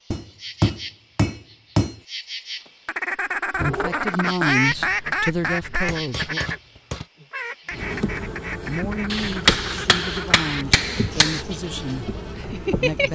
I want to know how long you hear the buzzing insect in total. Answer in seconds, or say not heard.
13 s.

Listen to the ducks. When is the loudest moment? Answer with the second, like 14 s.
5 s.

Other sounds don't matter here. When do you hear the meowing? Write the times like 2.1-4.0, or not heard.
3.5-4.1.